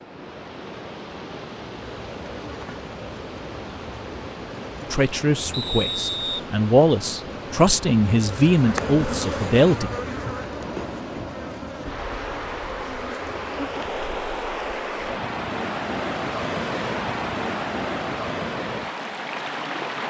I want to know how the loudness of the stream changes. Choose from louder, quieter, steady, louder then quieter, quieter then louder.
louder.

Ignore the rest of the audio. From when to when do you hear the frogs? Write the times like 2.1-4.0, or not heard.
not heard.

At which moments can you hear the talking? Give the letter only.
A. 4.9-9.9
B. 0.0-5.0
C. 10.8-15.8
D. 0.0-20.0
A.